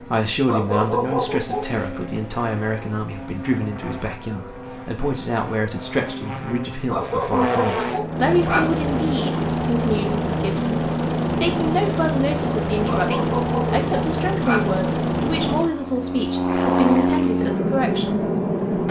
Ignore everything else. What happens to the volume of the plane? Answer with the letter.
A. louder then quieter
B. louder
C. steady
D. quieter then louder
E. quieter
B.